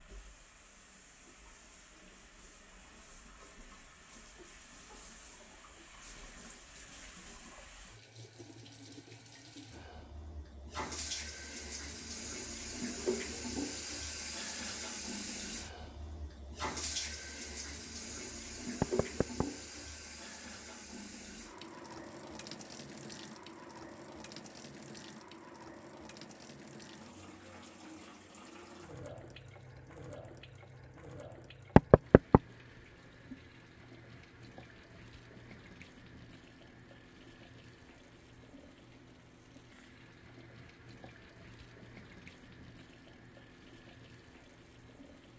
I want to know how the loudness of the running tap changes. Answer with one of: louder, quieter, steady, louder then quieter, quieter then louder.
louder then quieter.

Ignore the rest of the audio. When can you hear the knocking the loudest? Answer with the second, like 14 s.
32 s.